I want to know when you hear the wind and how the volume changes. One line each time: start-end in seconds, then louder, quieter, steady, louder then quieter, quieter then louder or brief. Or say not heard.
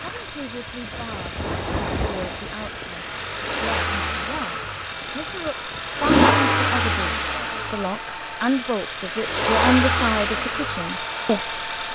0.0-6.0 louder then quieter.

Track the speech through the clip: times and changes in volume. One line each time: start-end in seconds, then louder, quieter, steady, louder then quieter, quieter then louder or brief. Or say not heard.
0.0-11.9 louder.